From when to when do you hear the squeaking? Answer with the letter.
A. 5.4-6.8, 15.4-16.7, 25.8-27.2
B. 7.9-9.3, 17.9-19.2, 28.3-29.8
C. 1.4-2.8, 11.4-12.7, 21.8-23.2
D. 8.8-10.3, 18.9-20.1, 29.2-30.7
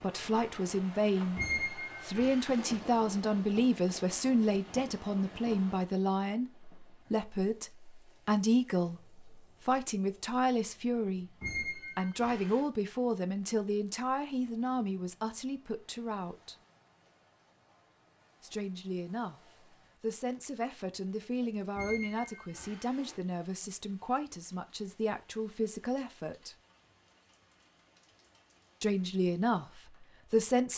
C.